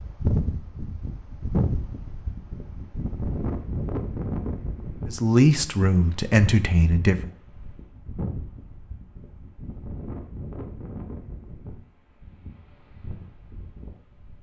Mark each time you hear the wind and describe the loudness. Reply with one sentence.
The wind can be heard from 0.0 to 14.3 s, getting quieter.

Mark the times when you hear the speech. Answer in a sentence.
You can hear the speech from 5.0 to 7.3 s.